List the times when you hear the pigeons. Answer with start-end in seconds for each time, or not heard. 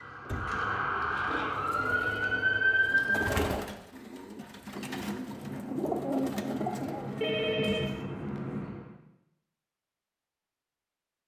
1.5-8.1.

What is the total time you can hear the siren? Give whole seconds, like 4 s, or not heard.
3 s.